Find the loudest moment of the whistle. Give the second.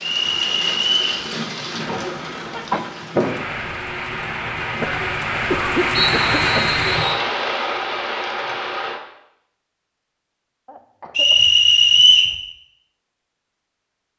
12 s.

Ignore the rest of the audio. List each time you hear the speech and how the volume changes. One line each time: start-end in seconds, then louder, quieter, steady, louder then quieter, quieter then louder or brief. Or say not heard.
not heard.